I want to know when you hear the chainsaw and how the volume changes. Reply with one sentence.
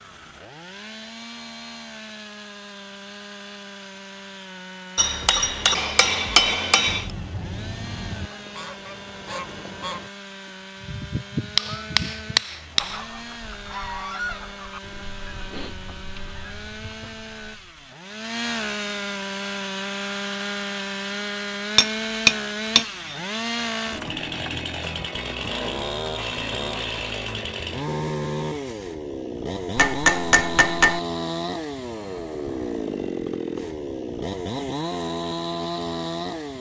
You can hear the chainsaw from 0.0 to 36.5 s, getting louder.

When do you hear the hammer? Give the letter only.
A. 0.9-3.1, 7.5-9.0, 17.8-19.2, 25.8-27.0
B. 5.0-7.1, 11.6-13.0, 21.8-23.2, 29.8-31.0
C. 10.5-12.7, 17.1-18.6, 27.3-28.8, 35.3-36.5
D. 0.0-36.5
B.